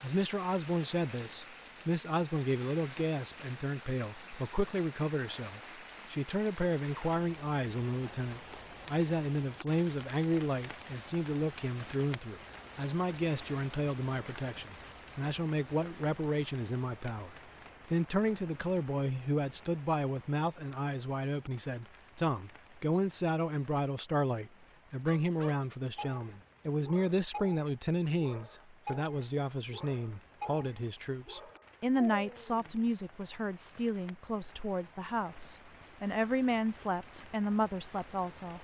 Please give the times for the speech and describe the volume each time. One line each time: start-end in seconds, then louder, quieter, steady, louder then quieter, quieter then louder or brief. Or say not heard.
0.0-38.5 steady.